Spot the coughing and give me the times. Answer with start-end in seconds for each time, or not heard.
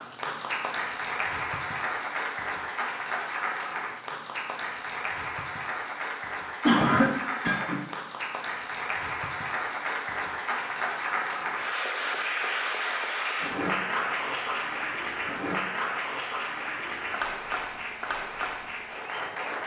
6.7-7.8.